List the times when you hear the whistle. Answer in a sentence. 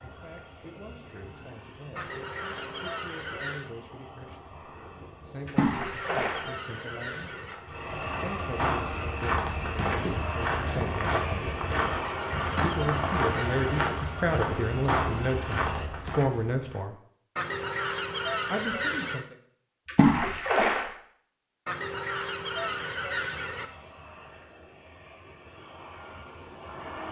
You can't hear the whistle here.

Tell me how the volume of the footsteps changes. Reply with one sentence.
The loudness of the footsteps stays about the same.